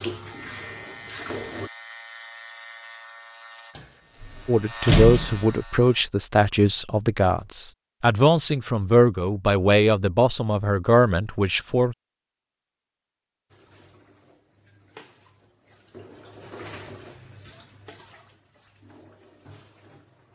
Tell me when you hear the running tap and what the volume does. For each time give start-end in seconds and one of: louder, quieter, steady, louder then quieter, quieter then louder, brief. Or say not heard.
0.0-1.7 brief
13.5-20.2 louder then quieter.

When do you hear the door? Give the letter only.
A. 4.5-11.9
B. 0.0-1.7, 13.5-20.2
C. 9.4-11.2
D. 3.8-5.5
D.